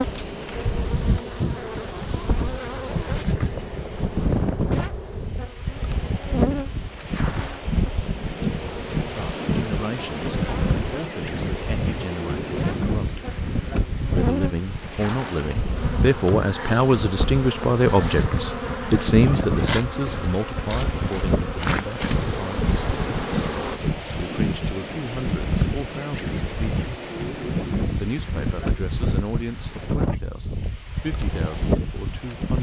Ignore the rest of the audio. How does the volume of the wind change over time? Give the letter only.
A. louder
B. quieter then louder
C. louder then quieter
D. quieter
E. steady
E.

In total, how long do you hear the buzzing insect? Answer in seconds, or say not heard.
24 s.